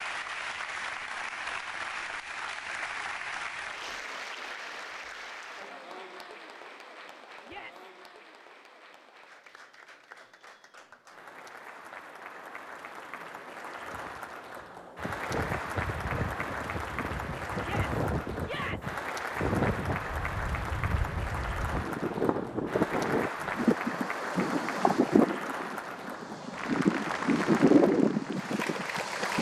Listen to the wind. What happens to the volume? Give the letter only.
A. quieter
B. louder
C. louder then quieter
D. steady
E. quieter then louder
B.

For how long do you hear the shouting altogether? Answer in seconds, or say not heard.
2 s.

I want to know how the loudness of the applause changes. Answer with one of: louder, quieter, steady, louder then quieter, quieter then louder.
quieter then louder.